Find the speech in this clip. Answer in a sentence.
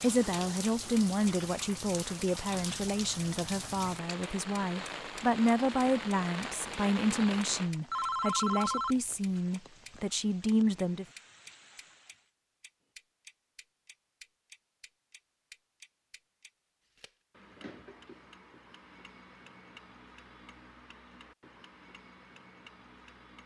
You can hear the speech from 0.0 to 11.1 s.